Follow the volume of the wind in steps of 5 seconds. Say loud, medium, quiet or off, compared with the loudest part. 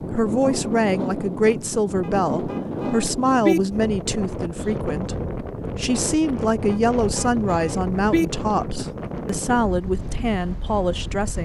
loud, loud, medium.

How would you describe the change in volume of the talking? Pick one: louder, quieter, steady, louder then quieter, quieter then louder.
steady.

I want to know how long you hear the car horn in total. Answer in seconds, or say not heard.
3 s.